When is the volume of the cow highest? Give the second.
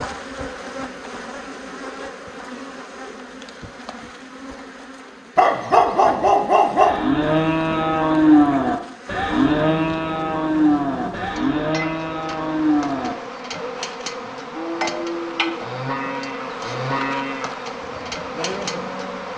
8 s.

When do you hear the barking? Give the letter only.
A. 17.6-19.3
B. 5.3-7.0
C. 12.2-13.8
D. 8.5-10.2
B.